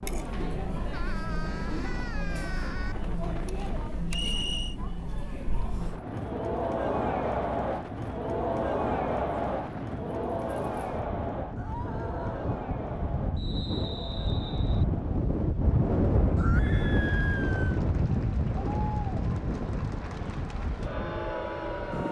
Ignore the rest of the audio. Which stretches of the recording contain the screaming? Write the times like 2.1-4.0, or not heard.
0.9-3.0, 11.6-12.4, 16.4-17.8.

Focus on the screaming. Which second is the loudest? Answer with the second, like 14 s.
17 s.